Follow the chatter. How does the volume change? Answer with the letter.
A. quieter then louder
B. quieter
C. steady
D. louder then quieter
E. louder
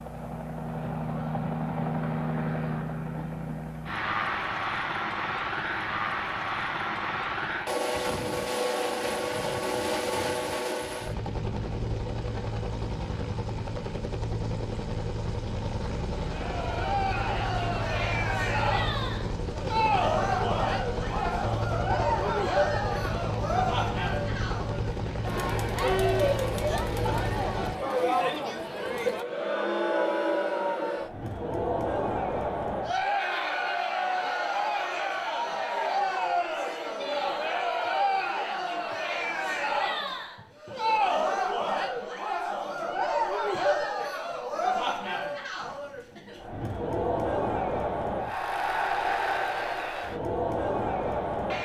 C.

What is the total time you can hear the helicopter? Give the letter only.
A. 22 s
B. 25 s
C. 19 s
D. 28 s
D.